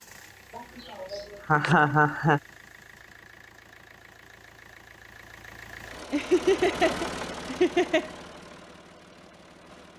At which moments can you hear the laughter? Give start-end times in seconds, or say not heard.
0.6-2.4, 6.1-8.1.